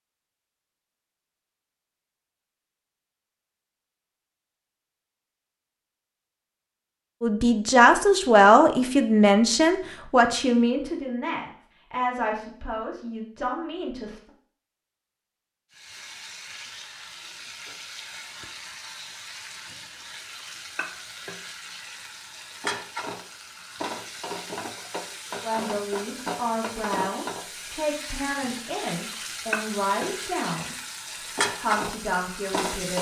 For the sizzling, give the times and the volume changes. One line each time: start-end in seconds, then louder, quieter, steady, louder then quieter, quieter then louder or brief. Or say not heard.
15.7-32.9 louder.